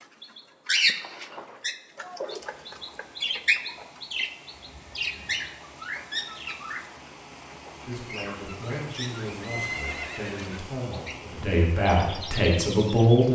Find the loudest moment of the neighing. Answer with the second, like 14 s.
10 s.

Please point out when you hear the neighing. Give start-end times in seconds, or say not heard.
1.0-1.6, 4.5-5.6, 9.4-10.6.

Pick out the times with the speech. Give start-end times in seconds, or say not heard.
7.8-13.3.